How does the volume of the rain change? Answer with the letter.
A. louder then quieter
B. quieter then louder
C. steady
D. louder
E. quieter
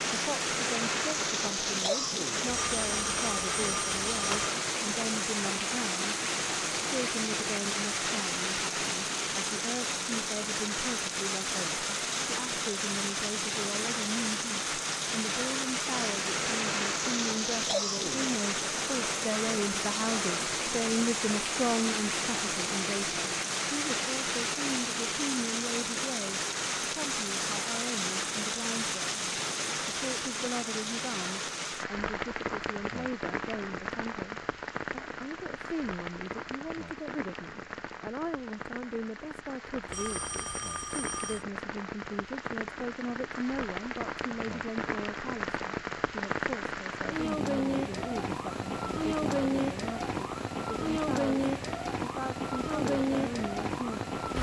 B.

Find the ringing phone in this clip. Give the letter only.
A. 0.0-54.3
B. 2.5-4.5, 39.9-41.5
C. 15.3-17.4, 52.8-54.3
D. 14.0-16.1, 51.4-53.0
B.